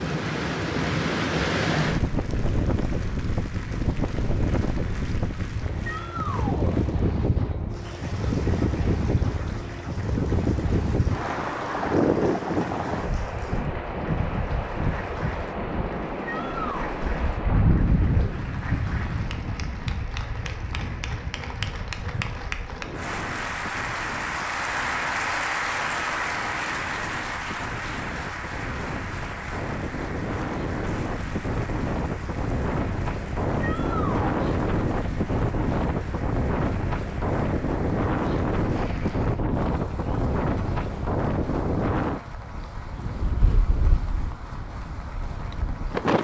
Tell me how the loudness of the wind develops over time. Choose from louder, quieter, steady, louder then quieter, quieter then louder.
quieter then louder.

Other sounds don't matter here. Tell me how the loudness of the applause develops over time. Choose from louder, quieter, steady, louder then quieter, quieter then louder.
louder then quieter.